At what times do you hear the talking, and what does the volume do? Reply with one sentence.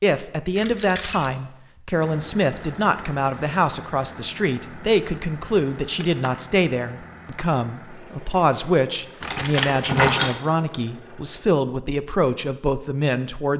You can hear the talking from 0.0 to 13.5 s, at a steady volume.